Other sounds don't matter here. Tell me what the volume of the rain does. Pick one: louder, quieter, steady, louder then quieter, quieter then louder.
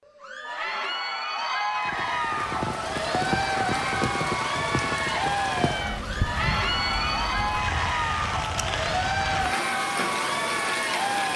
steady.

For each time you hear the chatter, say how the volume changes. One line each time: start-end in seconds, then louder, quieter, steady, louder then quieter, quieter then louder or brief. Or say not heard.
0.1-11.3 steady.